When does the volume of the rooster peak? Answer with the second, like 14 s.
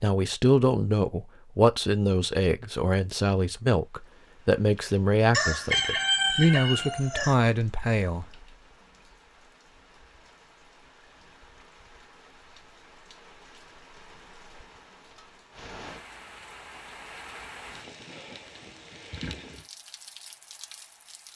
6 s.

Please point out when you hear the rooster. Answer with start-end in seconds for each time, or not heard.
5.3-7.3.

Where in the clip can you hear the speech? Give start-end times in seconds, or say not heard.
0.0-8.4.